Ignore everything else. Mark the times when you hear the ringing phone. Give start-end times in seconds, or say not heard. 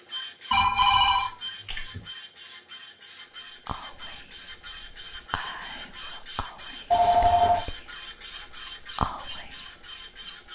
0.5-2.0, 6.9-7.6.